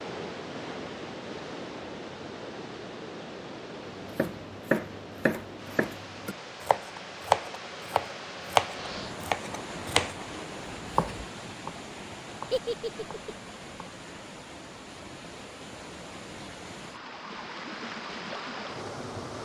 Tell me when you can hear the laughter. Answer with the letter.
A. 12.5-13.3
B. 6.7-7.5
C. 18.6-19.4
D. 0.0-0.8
A.